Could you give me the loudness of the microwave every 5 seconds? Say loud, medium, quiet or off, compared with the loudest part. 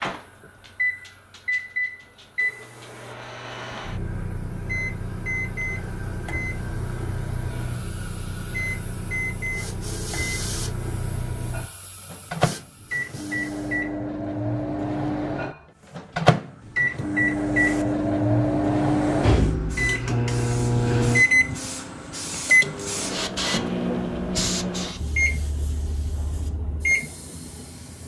medium, medium, medium, loud, loud, medium.